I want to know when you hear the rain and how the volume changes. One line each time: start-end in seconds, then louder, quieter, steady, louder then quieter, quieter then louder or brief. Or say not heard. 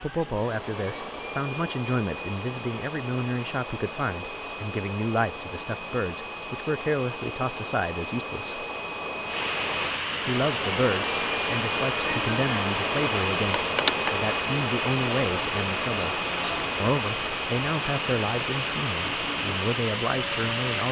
0.0-20.8 louder.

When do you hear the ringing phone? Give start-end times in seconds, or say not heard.
13.5-14.2.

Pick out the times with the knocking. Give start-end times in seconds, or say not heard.
not heard.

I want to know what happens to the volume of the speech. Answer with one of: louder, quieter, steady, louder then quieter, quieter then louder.
steady.